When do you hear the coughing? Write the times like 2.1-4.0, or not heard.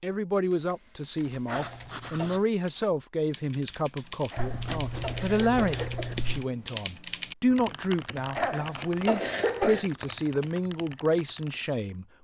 1.4-2.4, 4.3-6.2, 8.3-9.8.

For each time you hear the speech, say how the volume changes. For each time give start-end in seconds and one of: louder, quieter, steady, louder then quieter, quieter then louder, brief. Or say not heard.
0.0-12.2 steady.